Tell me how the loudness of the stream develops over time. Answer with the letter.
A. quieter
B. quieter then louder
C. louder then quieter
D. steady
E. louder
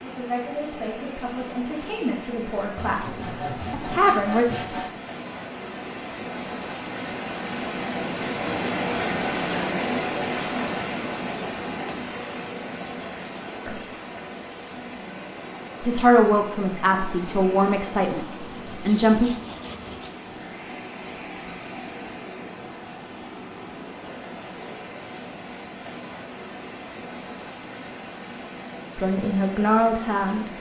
C.